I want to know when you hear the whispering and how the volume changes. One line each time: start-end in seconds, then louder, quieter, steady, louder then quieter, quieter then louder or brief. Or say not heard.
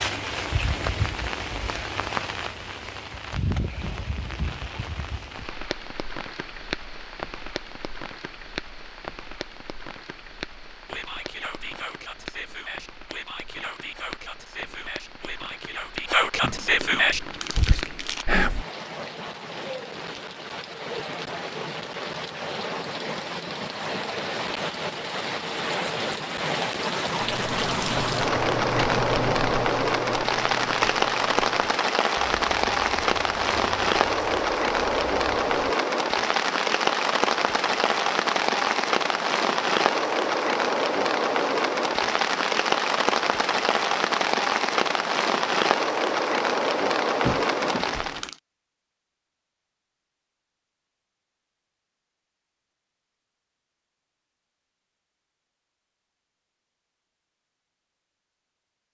10.8-18.6 louder.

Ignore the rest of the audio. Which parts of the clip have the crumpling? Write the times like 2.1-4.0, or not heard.
16.4-18.2, 47.2-48.4.